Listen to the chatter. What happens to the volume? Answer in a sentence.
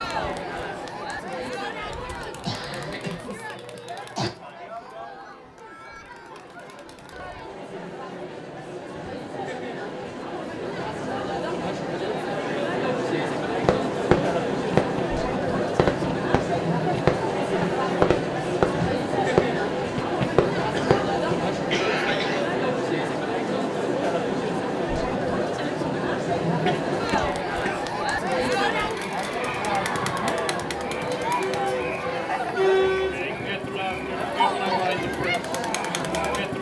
The volume of the chatter goes up.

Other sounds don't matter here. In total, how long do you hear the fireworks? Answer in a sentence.
The fireworks can be heard for 8 seconds in total.